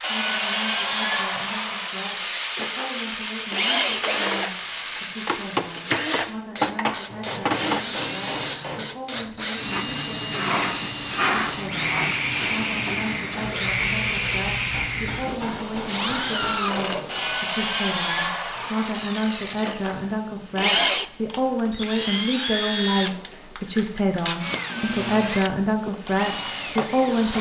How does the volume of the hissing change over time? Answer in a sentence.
The loudness of the hissing goes down.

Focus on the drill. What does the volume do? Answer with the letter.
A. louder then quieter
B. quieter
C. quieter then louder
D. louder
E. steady
E.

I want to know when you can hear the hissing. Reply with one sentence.
You can hear the hissing from 0.0 to 27.3 s.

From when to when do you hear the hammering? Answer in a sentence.
The hammering can be heard from 7.0 to 8.9 s and from 14.7 to 16.6 s.